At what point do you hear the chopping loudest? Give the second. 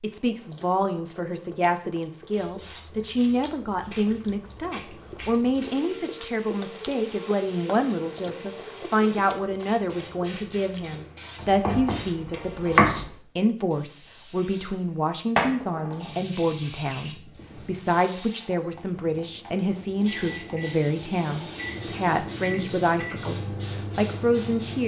13 s.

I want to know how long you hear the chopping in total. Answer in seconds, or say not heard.
2 s.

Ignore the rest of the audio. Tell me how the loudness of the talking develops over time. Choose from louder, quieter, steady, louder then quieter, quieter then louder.
steady.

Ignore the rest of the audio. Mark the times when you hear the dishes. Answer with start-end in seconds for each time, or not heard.
not heard.